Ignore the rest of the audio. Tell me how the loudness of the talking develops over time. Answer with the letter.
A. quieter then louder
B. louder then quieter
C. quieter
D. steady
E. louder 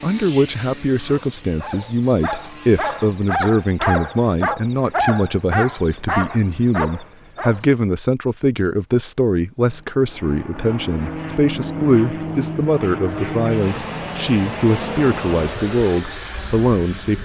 D.